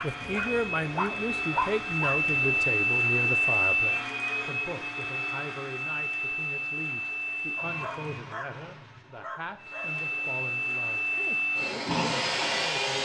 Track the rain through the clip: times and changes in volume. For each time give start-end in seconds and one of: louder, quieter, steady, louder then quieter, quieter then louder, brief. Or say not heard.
not heard.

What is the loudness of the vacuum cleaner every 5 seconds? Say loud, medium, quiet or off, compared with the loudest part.
loud, medium, loud.